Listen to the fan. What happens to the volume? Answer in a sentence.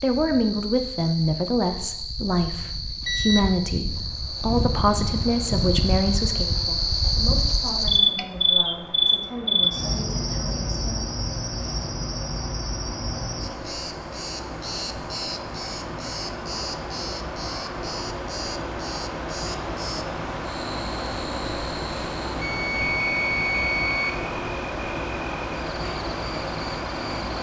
The loudness of the fan goes up.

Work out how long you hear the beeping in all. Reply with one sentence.
You can hear the beeping for 2 seconds altogether.